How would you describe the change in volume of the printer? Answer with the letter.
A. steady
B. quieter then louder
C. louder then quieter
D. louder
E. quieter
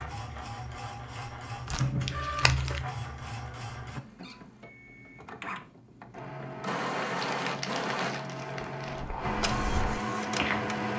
B.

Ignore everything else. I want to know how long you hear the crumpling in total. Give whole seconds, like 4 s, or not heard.
3 s.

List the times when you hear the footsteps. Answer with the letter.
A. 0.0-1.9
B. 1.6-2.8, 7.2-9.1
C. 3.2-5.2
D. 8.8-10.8
D.